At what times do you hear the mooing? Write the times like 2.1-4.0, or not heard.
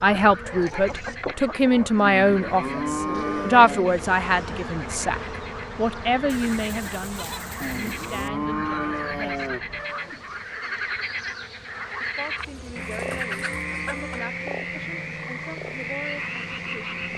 2.0-3.9, 7.6-9.6, 12.8-14.4.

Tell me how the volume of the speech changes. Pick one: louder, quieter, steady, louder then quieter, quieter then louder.
quieter.